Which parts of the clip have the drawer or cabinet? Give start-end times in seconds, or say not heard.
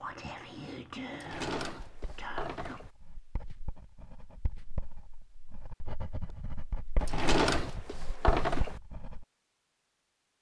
1.1-2.9, 7.0-8.8.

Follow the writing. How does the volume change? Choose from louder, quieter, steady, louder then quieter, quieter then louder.
louder.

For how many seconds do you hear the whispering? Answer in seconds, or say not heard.
3 s.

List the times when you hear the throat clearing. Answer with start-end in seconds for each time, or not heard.
not heard.